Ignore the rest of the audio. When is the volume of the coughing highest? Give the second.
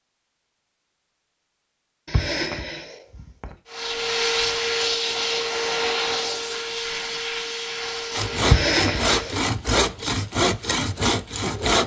9 s.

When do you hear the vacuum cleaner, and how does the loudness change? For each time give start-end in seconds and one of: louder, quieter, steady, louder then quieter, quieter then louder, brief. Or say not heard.
3.6-9.4 quieter.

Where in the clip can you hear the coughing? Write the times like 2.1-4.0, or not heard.
2.0-3.5, 8.4-9.3.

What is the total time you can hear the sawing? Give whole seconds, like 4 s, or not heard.
4 s.